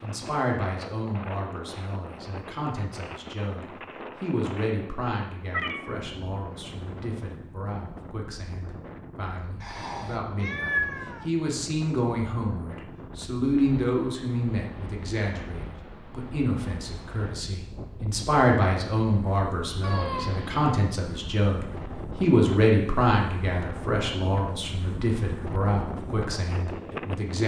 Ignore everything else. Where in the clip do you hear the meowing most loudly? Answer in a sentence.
The volume of the meowing peaks at 11 seconds.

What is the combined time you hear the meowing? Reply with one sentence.
The meowing can be heard for 3 seconds in total.